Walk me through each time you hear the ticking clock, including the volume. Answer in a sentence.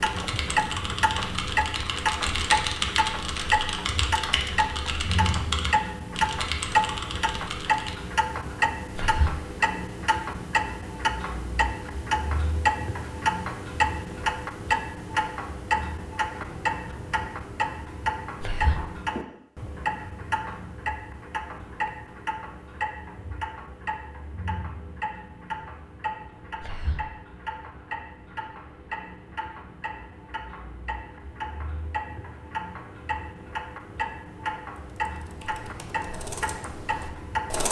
You can hear the ticking clock from 0.0 to 37.6 s, getting quieter.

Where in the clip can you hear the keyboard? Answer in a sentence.
The keyboard can be heard from 0.0 to 8.0 s and from 34.8 to 37.6 s.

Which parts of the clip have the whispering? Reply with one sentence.
You can hear the whispering from 8.9 to 9.3 s, from 18.4 to 18.9 s and from 26.6 to 27.1 s.